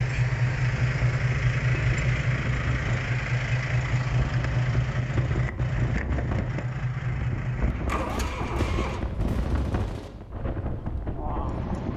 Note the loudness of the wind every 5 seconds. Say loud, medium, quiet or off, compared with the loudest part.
medium, loud, loud.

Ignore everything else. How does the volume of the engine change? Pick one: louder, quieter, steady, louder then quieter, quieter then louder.
quieter.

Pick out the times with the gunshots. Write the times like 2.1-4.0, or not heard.
8.1-10.1.